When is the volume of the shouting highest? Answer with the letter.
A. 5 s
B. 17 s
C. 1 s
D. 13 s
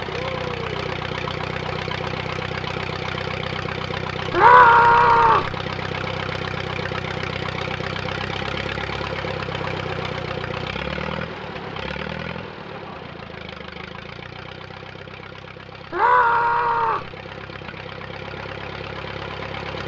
A.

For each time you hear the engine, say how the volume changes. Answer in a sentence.
The engine can be heard from 0.0 to 19.8 s, getting quieter.